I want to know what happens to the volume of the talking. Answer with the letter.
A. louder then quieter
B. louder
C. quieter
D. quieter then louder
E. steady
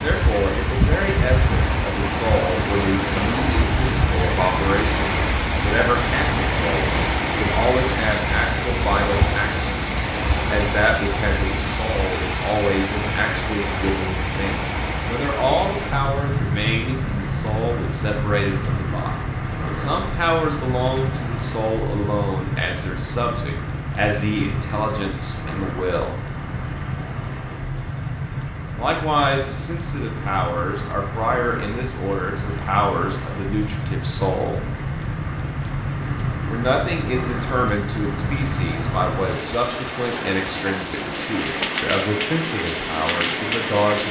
E.